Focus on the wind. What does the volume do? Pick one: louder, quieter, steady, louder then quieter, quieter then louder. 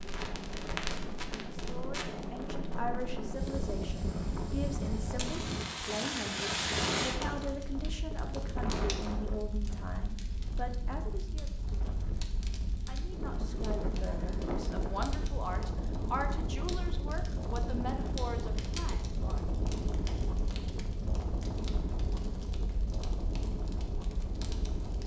steady.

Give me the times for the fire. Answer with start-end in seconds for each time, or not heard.
0.0-25.0.